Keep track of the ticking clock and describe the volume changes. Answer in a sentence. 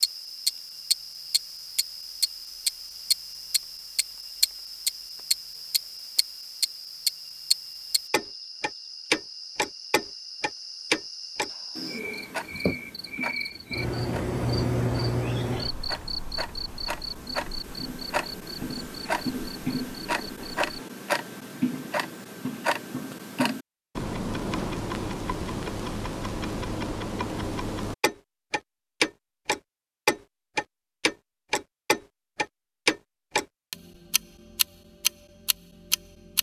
The loudness of the ticking clock goes down, then up.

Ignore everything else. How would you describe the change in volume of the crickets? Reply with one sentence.
The volume of the crickets goes up.